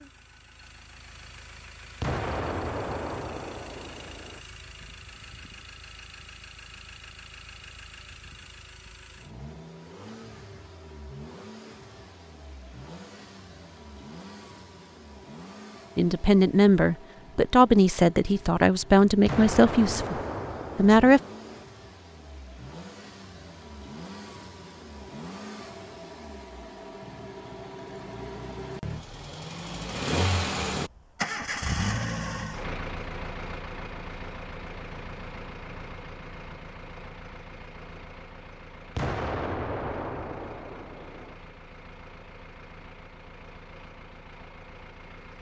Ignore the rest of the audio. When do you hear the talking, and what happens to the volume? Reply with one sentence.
You can hear the talking from 15.9 to 20.1 s, at a steady volume; and briefly from 20.8 to 21.2 s.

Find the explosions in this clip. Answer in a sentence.
You can hear the explosions from 2.0 to 4.4 s, from 19.2 to 21.6 s and from 39.0 to 41.4 s.